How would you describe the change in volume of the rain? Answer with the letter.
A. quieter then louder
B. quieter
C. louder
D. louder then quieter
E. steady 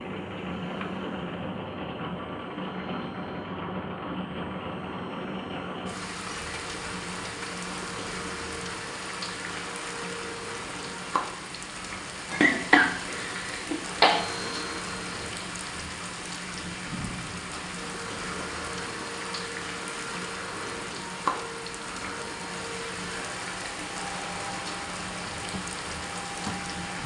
E.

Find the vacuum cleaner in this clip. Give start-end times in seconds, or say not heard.
0.0-11.2, 13.1-15.3, 17.8-27.0.